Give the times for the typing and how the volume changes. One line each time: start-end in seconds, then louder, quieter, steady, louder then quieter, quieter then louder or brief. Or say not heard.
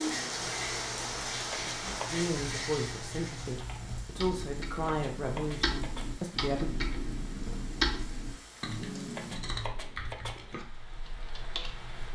0.0-11.9 louder then quieter.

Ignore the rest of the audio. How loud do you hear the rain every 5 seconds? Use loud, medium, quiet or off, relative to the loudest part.
loud, quiet, quiet.